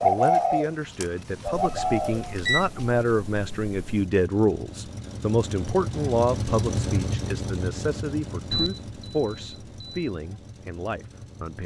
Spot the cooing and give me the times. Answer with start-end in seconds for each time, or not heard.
0.0-3.0.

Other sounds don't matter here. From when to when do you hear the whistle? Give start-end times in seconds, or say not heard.
not heard.